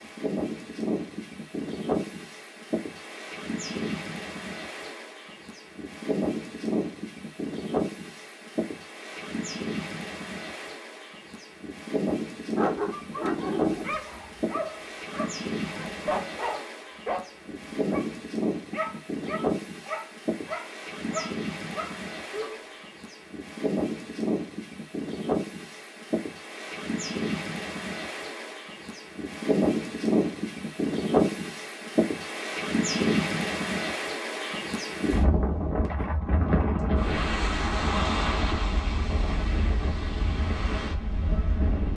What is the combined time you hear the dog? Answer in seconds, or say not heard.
10 s.